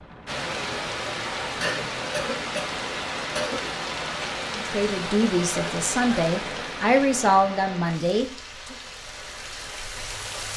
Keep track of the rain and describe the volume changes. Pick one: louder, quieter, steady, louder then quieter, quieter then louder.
quieter.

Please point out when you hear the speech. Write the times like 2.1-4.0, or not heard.
4.5-8.8.